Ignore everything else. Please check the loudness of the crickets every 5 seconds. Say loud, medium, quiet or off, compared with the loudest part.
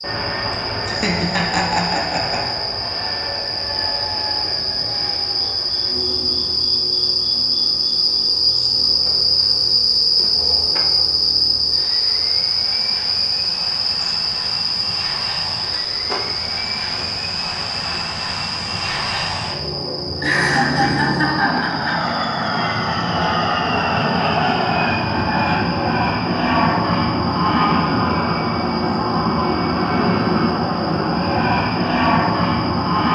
medium, loud, loud, medium, quiet, quiet, quiet.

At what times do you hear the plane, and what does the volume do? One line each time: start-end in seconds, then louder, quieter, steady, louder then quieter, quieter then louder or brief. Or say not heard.
0.0-33.1 quieter then louder.